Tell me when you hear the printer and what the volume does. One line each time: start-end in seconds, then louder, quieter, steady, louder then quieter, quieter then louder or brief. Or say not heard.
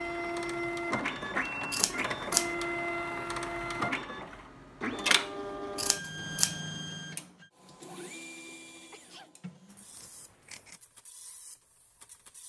0.0-12.4 quieter.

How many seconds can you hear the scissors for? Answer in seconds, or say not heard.
3 s.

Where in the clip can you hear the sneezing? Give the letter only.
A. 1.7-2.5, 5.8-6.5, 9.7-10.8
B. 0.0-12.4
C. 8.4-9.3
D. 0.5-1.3
C.